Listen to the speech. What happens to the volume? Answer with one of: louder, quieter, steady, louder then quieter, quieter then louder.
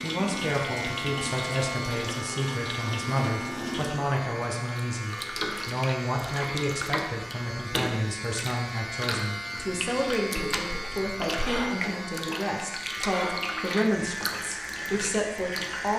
steady.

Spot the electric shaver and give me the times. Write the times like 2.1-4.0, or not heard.
0.0-15.9.